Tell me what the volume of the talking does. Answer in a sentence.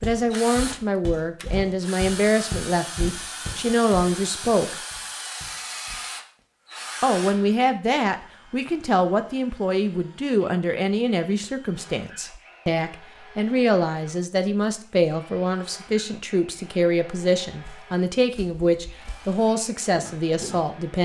The volume of the talking stays about the same.